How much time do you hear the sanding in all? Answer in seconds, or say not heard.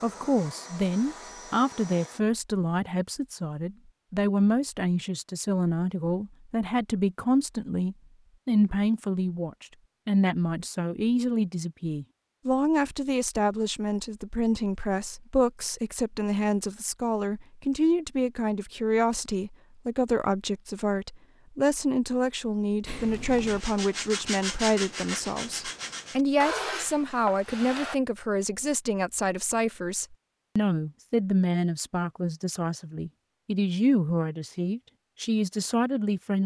5 s.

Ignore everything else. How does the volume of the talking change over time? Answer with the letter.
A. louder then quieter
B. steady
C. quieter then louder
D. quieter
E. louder
B.